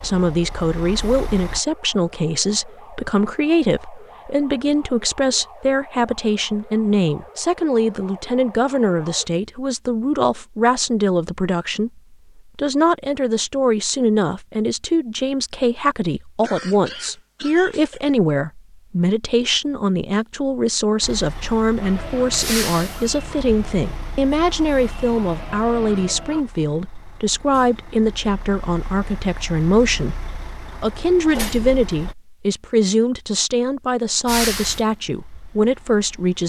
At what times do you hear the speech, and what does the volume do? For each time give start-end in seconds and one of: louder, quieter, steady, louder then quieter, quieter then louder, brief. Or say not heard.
0.0-36.4 steady.